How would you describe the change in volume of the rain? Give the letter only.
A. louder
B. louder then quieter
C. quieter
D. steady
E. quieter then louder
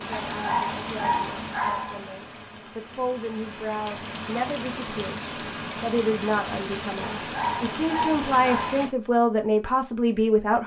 E.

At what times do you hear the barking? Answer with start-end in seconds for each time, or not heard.
0.1-2.0, 7.2-8.8.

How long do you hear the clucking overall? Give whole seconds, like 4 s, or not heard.
not heard.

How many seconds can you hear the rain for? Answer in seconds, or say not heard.
9 s.